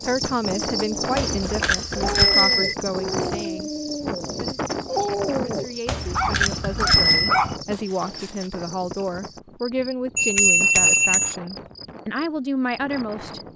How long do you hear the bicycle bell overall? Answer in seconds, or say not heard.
4 s.